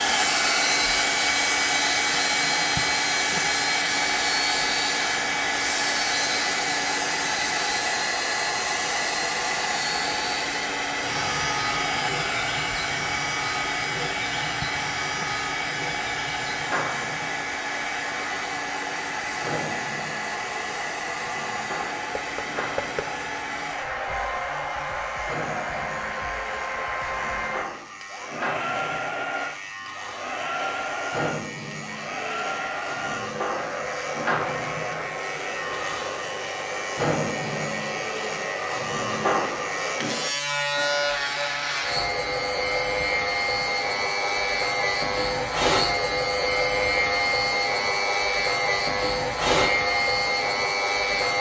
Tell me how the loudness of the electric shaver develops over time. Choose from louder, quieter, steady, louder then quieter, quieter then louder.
quieter then louder.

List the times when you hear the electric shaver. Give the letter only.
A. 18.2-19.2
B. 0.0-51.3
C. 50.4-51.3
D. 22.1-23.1
B.